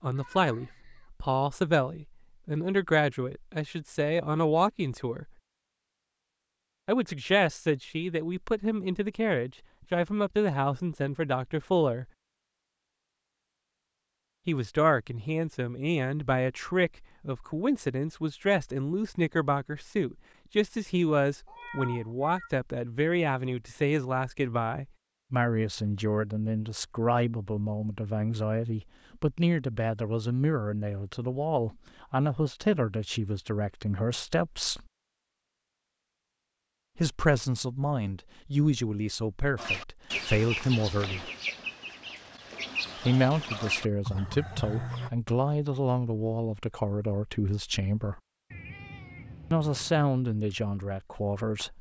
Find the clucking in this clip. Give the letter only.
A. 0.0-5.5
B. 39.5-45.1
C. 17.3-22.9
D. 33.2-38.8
B.